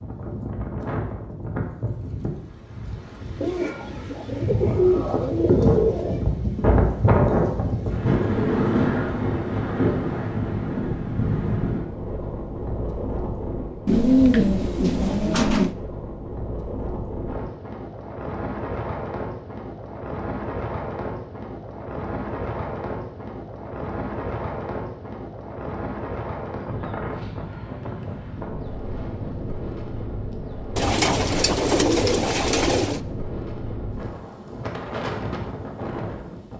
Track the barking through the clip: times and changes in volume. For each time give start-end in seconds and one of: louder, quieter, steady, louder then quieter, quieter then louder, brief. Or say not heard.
not heard.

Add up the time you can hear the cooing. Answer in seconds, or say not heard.
7 s.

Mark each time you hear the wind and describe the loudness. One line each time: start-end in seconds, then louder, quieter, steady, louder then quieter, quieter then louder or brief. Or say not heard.
0.0-36.5 quieter.